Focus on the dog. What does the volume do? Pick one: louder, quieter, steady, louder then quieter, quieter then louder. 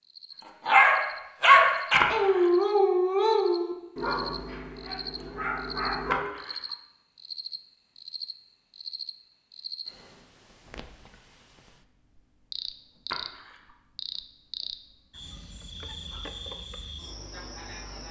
quieter.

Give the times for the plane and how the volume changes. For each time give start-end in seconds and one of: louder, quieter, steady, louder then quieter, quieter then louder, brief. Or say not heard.
not heard.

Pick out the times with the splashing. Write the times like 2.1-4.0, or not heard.
2.0-2.6, 6.1-6.6, 13.1-13.6.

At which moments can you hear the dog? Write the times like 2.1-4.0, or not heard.
0.7-6.2.